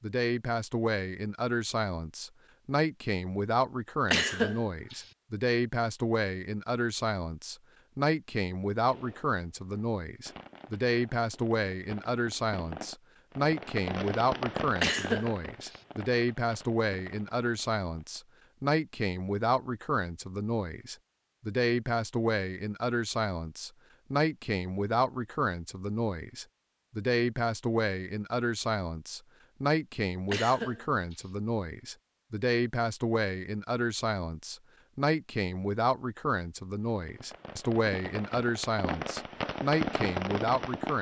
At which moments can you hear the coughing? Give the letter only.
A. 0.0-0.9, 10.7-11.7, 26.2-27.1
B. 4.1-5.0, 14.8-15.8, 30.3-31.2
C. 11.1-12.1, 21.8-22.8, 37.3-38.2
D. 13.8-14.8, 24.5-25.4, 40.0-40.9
B.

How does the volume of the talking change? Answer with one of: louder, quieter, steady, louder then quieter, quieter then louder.
steady.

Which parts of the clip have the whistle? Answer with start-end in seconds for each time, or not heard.
not heard.